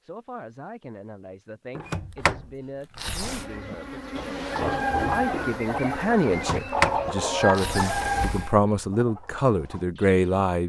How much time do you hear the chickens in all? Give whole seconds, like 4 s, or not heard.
6 s.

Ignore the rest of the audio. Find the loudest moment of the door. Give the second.
7 s.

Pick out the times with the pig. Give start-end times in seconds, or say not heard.
3.6-5.6.